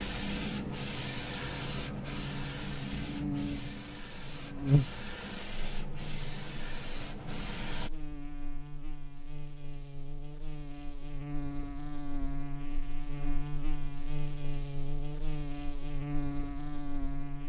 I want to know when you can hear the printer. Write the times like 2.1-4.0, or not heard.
0.0-7.9.